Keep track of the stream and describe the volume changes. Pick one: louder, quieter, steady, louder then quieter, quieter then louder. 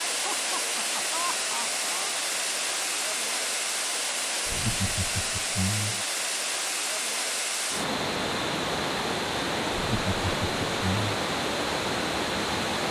steady.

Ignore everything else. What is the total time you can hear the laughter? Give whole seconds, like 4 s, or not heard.
5 s.